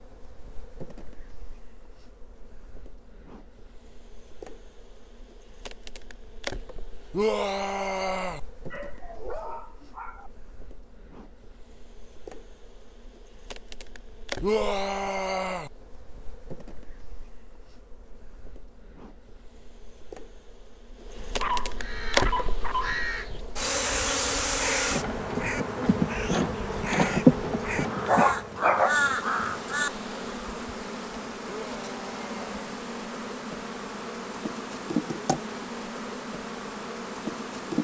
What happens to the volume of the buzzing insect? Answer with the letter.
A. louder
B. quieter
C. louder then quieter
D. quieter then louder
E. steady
C.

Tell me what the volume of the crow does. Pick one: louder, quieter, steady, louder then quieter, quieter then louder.
louder.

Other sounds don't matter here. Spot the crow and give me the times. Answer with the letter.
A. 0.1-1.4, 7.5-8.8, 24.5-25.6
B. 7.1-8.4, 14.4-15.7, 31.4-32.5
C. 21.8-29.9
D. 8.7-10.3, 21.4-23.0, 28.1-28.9
C.